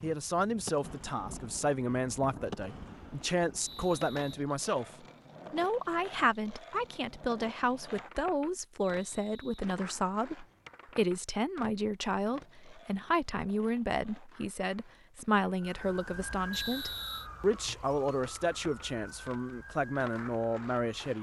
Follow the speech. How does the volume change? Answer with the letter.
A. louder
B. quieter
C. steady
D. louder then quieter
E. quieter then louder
C.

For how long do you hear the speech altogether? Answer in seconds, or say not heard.
21 s.